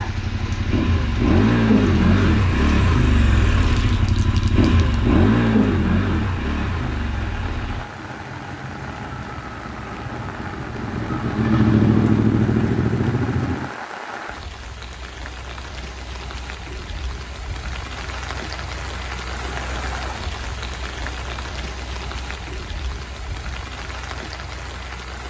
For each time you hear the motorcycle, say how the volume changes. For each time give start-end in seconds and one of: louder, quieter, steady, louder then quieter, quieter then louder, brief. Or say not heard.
0.0-13.7 quieter then louder.